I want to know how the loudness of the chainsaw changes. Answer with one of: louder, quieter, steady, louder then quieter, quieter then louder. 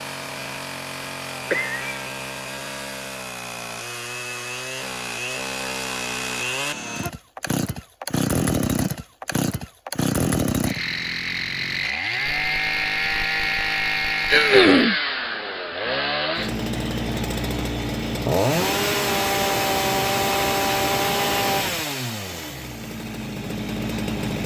louder.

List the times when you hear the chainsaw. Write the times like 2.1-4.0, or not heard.
0.0-24.4.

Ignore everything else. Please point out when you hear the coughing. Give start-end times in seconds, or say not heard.
1.5-2.0, 14.3-14.9.